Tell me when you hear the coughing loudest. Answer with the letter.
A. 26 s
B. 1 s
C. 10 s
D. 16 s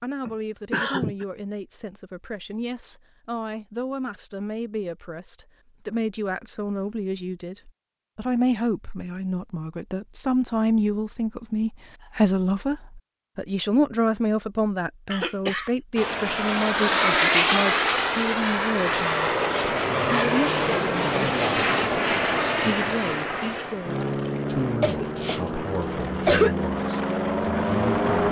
A.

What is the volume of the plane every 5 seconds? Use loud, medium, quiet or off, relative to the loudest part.
off, off, off, loud, loud, loud.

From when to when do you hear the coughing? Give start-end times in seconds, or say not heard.
0.2-1.2, 15.1-15.7, 24.8-26.6.